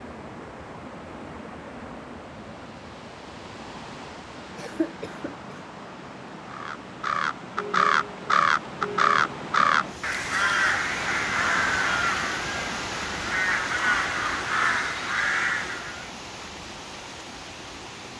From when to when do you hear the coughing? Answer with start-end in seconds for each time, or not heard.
4.5-5.4.